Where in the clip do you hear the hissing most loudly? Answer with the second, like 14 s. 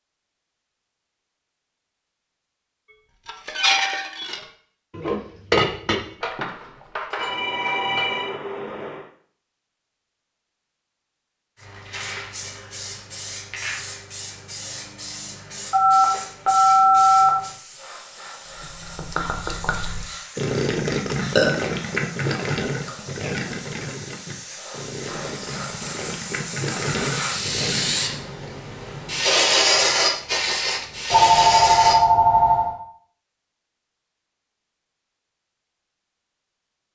30 s.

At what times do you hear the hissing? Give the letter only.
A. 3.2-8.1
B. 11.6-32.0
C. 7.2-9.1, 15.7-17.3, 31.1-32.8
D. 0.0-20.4
B.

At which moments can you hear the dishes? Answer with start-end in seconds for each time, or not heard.
3.2-8.1.